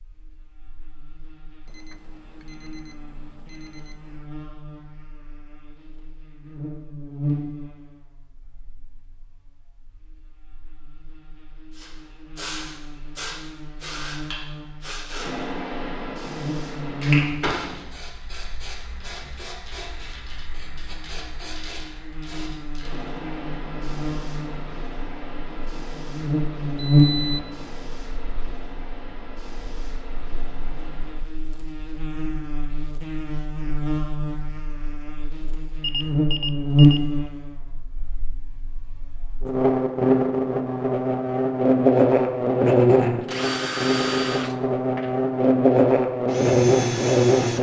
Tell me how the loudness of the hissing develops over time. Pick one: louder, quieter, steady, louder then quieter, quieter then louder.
quieter.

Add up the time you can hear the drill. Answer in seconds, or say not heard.
4 s.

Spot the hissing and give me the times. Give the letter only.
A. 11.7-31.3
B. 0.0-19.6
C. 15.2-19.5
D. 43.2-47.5
A.